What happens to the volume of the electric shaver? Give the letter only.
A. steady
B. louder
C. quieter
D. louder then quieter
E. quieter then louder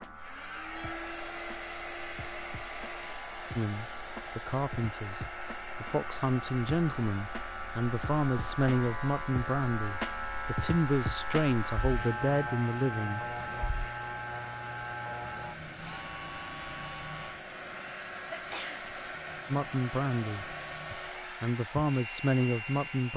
D.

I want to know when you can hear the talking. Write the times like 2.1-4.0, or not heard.
3.5-13.3, 19.5-23.1.